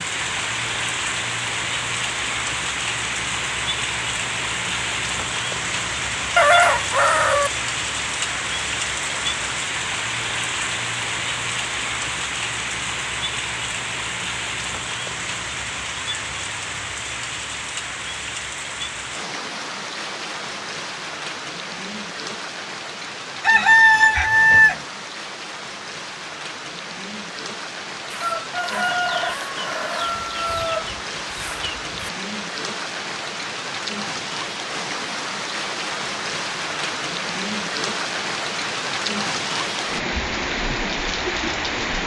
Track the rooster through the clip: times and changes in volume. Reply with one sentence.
The rooster can be heard briefly from 6.3 to 7.5 s; briefly from 23.4 to 24.8 s; and from 28.1 to 32.1 s, getting quieter.